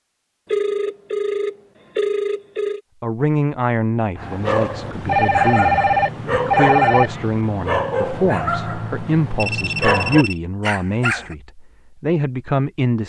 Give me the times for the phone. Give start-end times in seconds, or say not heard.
0.5-2.8, 5.0-7.1, 9.3-10.4.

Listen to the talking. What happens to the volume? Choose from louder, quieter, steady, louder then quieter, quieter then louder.
steady.